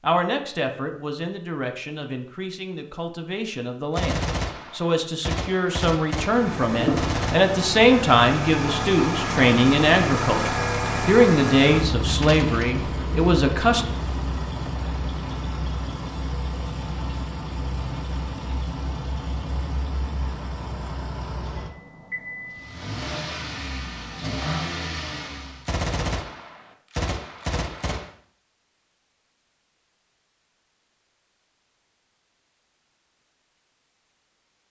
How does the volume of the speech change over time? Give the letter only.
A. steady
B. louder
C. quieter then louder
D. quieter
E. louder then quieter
B.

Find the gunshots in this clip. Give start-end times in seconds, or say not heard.
4.0-7.4, 25.6-28.1.